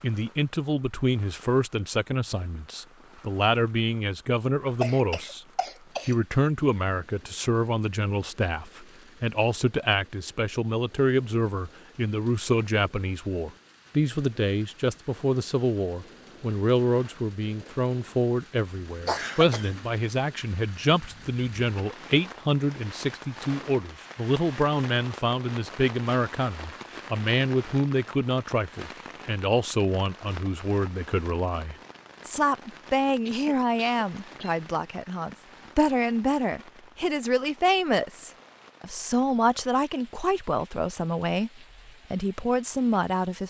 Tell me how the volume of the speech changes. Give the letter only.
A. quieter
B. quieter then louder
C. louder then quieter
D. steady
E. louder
D.